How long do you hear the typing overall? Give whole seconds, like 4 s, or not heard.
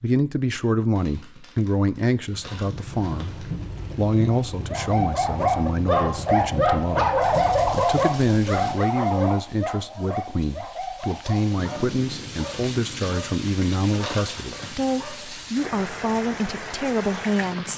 not heard.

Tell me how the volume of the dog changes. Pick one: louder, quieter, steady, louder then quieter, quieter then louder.
quieter.